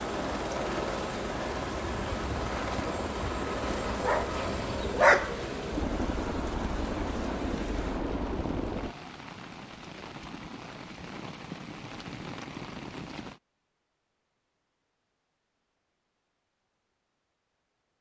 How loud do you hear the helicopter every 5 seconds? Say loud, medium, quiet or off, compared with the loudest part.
loud, loud, off, off.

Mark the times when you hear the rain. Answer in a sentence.
The rain can be heard from 0.0 to 13.4 s.